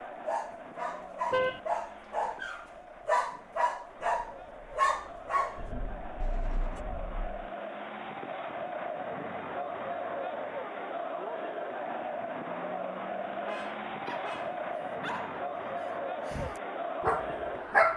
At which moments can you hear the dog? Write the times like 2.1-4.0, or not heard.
0.2-5.6, 14.0-17.9.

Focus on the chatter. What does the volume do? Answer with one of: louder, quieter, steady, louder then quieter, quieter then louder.
louder.